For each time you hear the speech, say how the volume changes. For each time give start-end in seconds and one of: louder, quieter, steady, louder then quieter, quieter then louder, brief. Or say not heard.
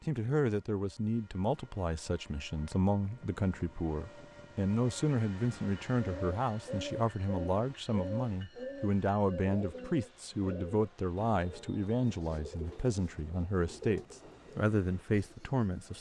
0.0-15.9 steady.